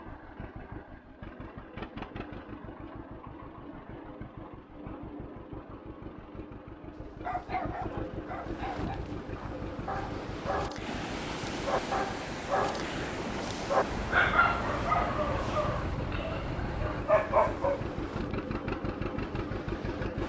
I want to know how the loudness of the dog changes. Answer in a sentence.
The volume of the dog goes up.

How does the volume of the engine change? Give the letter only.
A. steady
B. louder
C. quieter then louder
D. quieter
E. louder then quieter
B.